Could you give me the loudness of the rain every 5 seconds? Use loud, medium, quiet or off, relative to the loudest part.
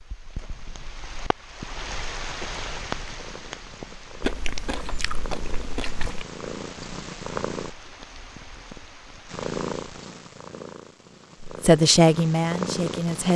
loud, medium, off.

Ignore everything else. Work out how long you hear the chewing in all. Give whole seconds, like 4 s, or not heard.
2 s.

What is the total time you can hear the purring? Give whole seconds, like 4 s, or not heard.
10 s.